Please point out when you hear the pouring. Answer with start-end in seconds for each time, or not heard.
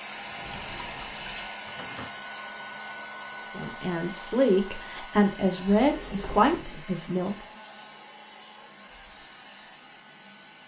0.4-1.5.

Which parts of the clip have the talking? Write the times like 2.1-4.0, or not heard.
3.5-7.3.